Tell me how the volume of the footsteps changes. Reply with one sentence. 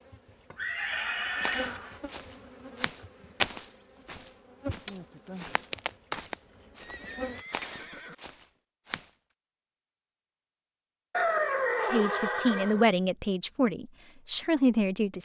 The volume of the footsteps goes up, then down.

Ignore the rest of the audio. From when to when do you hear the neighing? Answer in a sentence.
You can hear the neighing from 0.6 to 2.0 s, from 6.8 to 8.2 s and from 11.1 to 12.8 s.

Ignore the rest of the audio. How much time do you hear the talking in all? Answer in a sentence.
The talking can be heard for 3 seconds in total.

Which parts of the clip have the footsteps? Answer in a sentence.
The footsteps can be heard from 1.4 to 9.1 s.